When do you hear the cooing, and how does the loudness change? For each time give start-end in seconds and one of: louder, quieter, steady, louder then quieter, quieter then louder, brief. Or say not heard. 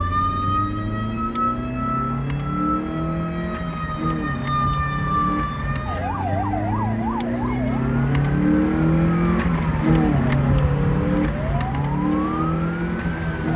not heard.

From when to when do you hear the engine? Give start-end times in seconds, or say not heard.
0.0-13.5.